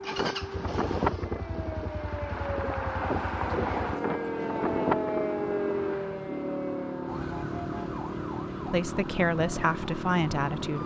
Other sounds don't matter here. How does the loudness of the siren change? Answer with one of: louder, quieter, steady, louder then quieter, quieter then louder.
louder then quieter.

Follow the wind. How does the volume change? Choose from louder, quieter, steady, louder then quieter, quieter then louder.
quieter then louder.